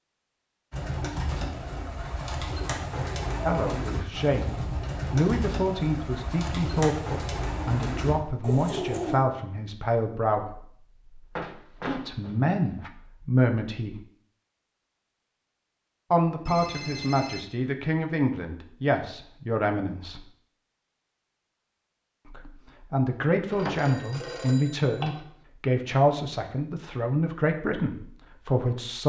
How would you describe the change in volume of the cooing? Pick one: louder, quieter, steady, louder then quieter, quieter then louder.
steady.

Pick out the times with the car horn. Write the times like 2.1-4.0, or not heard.
not heard.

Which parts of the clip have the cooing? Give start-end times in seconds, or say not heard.
0.7-9.2.